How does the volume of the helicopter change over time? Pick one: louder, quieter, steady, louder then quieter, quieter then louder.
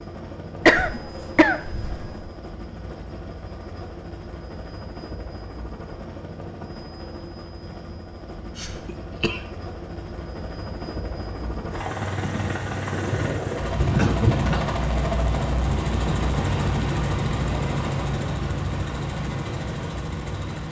louder.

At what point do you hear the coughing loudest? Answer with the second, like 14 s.
1 s.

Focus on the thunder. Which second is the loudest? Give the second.
14 s.